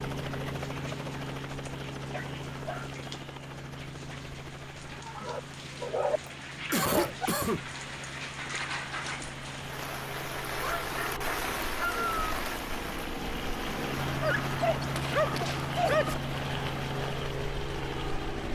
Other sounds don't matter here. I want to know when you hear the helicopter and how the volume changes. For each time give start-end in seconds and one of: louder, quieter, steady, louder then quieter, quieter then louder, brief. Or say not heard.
0.0-18.5 quieter then louder.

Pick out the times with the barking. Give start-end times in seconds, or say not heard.
2.1-2.9, 5.2-6.2, 6.8-7.3, 10.6-12.2, 14.2-16.1.